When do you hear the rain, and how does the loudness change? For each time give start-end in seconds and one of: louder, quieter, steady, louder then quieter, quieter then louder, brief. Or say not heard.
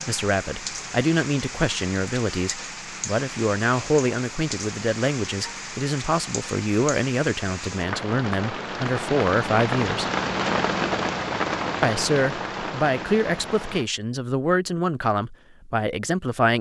0.0-13.8 louder.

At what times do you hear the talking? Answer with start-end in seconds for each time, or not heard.
0.1-10.1, 11.8-16.5.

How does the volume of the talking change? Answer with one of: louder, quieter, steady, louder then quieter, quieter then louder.
steady.